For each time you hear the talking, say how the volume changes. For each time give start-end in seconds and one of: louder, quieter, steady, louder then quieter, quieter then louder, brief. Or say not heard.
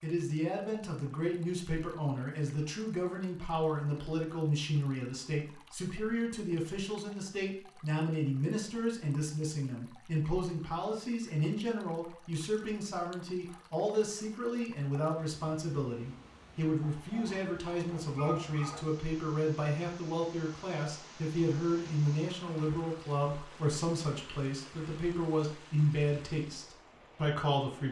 0.0-27.8 steady.